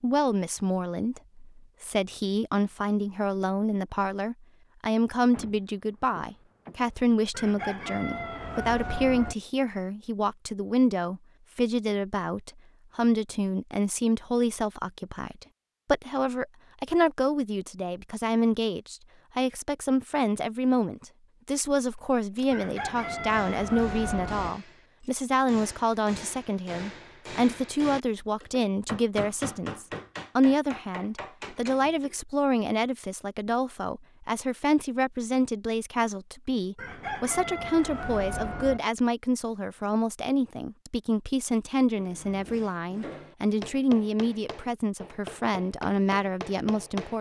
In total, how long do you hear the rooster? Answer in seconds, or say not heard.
6 s.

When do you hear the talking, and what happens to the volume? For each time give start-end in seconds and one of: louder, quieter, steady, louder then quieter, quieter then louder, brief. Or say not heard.
0.0-47.1 steady.